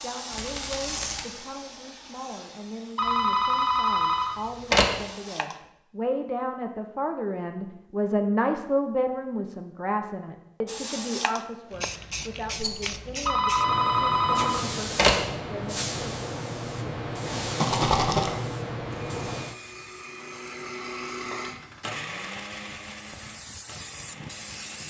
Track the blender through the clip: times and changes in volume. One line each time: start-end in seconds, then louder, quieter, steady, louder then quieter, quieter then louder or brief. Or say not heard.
18.9-24.8 louder then quieter.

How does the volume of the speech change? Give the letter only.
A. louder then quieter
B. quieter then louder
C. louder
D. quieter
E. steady
A.